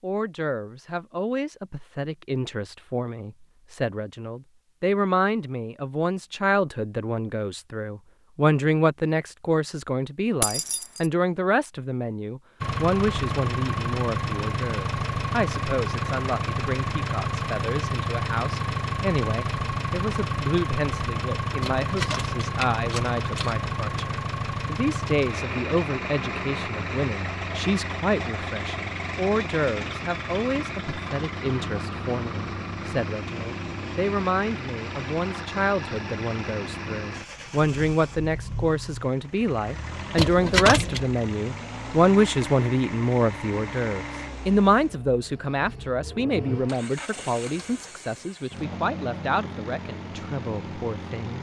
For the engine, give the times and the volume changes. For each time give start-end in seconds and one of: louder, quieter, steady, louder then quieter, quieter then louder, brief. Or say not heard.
12.6-51.3 quieter.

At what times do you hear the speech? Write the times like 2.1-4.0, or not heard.
0.0-51.3.